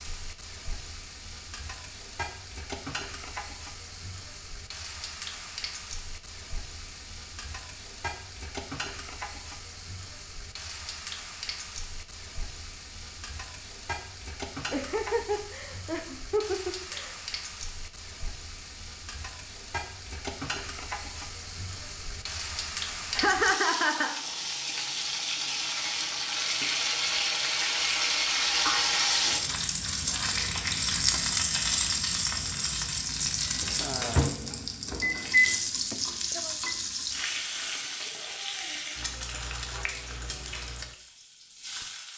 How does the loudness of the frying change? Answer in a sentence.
The volume of the frying goes up, then down.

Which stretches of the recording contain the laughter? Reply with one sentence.
The laughter can be heard from 14.7 to 17.1 s and from 23.1 to 24.2 s.